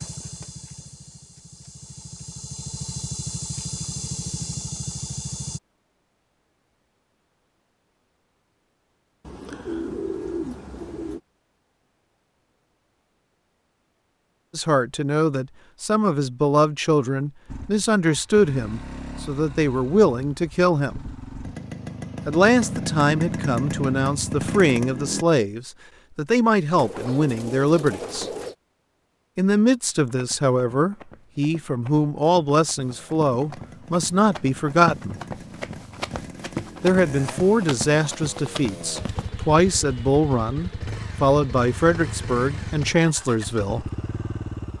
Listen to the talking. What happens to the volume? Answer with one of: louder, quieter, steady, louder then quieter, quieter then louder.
steady.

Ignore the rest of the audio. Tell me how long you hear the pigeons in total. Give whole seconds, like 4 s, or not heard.
4 s.